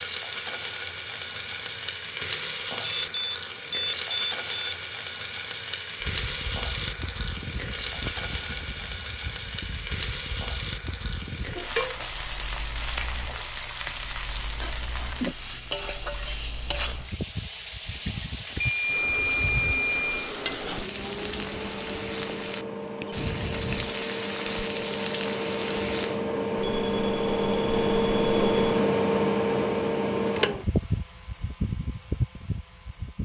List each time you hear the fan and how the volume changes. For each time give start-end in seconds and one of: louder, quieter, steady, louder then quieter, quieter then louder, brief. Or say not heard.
6.0-33.1 quieter then louder.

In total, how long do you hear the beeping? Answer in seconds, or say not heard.
6 s.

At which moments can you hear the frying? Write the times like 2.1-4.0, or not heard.
0.0-26.2.